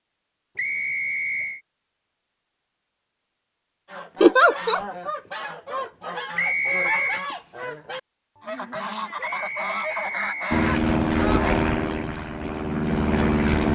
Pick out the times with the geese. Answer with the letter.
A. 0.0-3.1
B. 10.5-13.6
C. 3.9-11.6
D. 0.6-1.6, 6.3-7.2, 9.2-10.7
C.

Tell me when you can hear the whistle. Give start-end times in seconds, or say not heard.
0.6-1.6, 6.3-7.2, 9.2-10.7.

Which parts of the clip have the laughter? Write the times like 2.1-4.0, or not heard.
4.2-4.8.